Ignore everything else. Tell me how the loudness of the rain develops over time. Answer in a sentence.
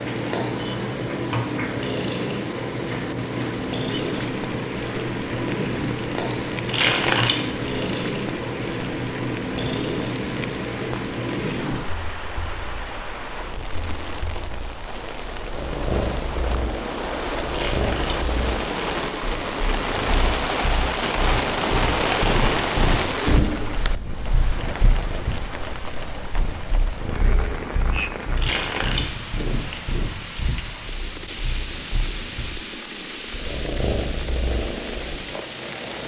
The loudness of the rain goes up, then down.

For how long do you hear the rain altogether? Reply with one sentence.
The rain can be heard for 36 seconds in total.